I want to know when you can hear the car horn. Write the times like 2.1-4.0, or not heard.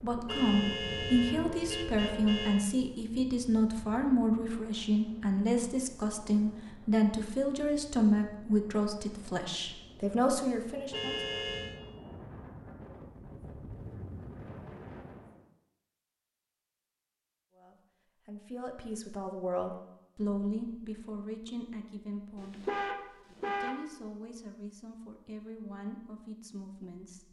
0.2-2.6, 10.9-11.8, 22.4-23.9.